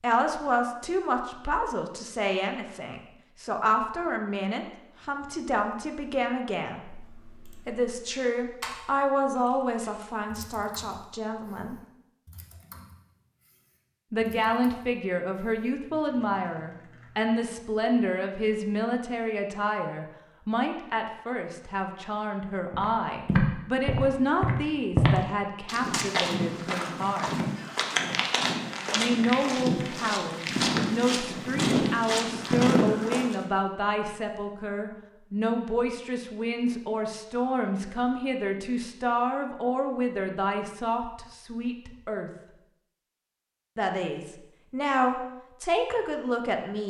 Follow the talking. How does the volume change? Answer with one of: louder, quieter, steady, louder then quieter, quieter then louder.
steady.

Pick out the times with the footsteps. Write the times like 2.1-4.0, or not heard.
22.7-33.5.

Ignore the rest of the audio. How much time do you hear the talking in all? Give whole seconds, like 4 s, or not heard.
41 s.